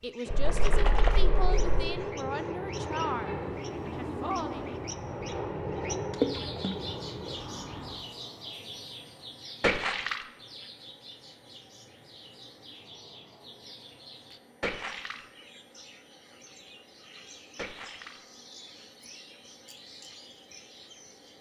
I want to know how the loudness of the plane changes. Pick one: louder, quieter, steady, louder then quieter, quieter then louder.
quieter.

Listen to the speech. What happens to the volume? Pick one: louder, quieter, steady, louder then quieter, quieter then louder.
steady.